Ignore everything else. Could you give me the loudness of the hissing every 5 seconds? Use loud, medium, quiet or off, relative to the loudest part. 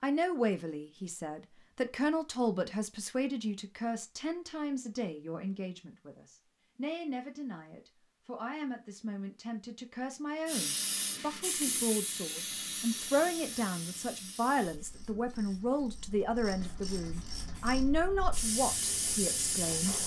off, off, loud, loud.